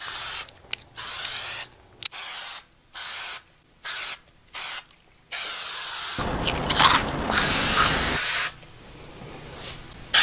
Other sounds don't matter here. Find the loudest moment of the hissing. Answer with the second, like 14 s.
8 s.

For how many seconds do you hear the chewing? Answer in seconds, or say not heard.
4 s.